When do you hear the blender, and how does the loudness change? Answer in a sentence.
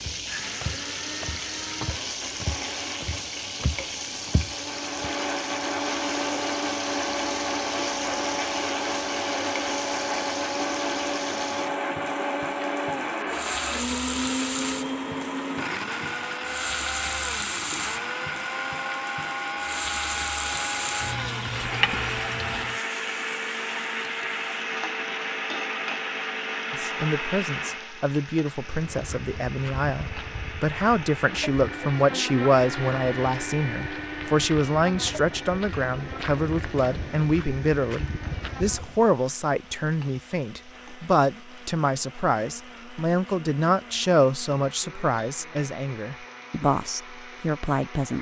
You can hear the blender from 0.1 to 48.1 s, getting quieter.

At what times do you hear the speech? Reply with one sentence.
The speech can be heard from 26.7 to 48.1 s.